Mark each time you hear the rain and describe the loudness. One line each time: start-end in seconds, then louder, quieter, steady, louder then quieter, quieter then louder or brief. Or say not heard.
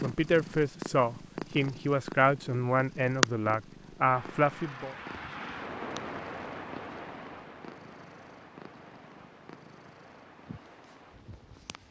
4.0-11.8 quieter.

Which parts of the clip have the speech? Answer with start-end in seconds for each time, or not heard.
0.0-5.0.